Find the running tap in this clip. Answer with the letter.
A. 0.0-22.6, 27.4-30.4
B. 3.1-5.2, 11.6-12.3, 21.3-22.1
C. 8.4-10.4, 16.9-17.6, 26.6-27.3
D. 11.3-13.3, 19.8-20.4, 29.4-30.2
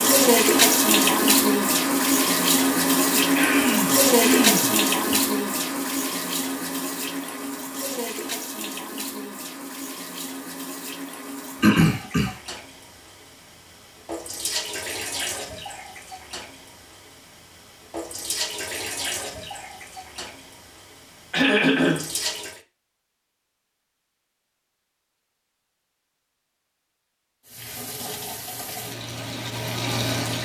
A.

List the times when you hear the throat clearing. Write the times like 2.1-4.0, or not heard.
3.1-5.2, 11.6-12.3, 21.3-22.1.